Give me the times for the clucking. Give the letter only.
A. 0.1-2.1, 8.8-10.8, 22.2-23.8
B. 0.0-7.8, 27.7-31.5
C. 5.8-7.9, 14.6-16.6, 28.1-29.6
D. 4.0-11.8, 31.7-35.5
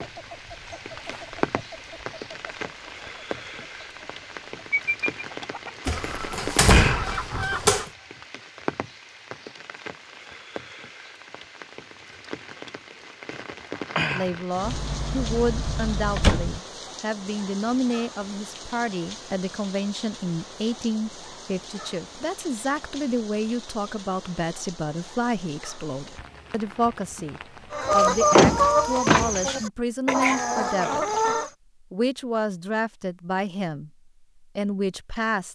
B.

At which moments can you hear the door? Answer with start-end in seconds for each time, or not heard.
5.8-7.9, 14.6-16.6, 28.1-29.6.